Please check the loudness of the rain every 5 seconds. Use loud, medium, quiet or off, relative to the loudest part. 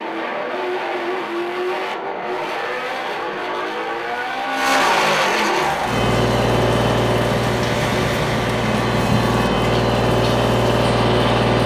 off, loud, loud.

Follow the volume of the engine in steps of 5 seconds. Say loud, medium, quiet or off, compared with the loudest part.
medium, loud, loud.